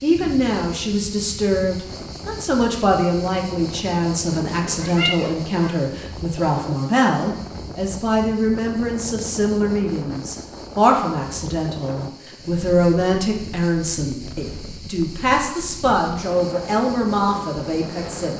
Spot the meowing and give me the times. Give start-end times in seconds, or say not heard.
4.7-5.7.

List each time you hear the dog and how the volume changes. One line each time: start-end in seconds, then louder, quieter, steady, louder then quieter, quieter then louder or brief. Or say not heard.
not heard.